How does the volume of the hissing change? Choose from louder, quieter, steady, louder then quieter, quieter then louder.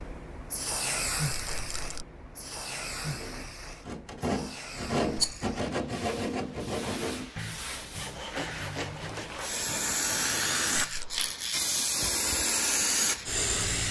quieter then louder.